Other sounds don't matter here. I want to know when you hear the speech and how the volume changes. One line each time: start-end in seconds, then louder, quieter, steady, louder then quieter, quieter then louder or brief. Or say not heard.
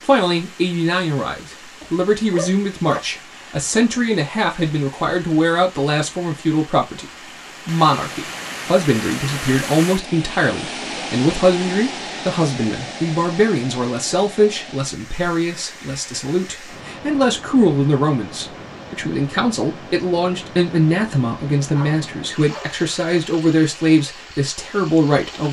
0.0-25.4 steady.